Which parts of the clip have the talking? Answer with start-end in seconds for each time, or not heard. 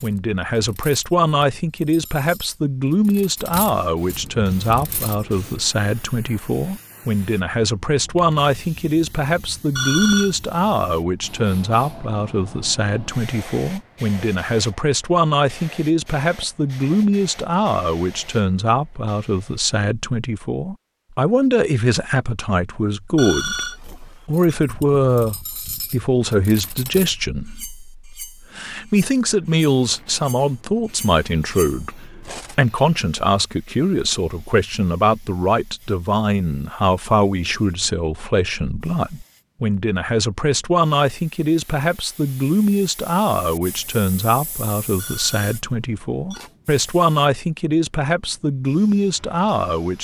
0.0-50.0.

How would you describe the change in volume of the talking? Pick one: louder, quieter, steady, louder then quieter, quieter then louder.
steady.